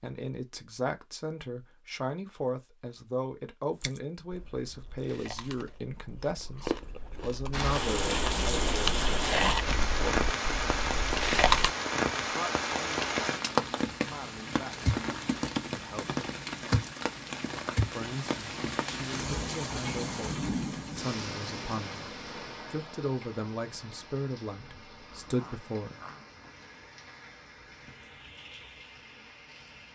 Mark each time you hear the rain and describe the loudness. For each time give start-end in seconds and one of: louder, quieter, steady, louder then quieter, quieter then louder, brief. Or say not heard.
7.5-29.8 quieter.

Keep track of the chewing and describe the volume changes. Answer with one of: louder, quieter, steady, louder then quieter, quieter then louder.
louder then quieter.